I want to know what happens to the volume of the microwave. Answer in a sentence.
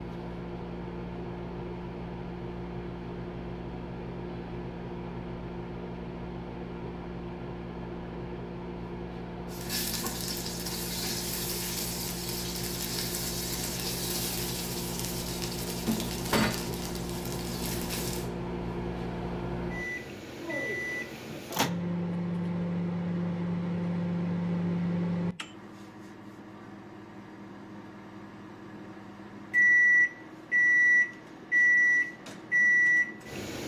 The loudness of the microwave goes up.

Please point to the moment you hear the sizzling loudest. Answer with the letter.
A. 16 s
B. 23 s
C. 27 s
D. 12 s
A.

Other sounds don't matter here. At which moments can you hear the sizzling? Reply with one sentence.
The sizzling can be heard from 9.4 to 18.3 s.